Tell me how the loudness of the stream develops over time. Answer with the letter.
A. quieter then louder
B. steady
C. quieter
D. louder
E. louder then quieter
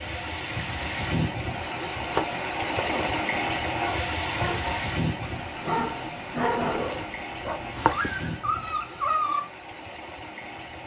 C.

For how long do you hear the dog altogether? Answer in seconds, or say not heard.
6 s.